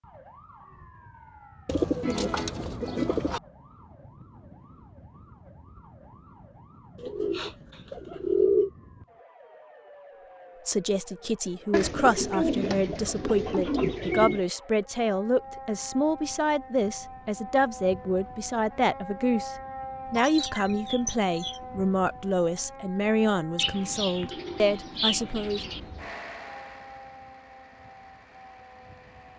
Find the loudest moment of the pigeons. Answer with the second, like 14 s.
8 s.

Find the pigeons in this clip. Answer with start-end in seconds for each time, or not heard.
1.6-3.4, 7.0-8.7, 11.7-14.4, 20.1-21.6, 23.6-25.9.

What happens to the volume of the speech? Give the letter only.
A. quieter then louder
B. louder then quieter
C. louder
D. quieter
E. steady
E.